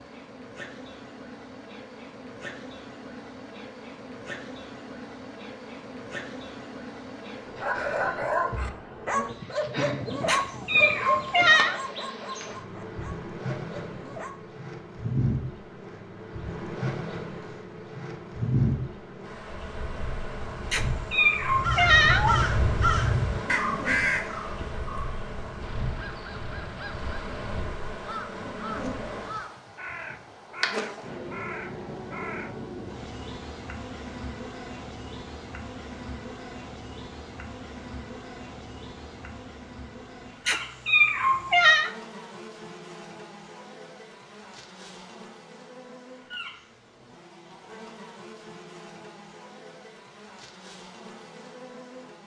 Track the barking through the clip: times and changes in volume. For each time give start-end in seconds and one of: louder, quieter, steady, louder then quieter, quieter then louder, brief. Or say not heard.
7.6-14.3 quieter.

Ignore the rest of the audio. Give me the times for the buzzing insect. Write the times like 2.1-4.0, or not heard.
0.0-52.2.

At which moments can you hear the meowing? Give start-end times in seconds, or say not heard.
10.2-11.8, 20.7-22.4, 40.5-41.9.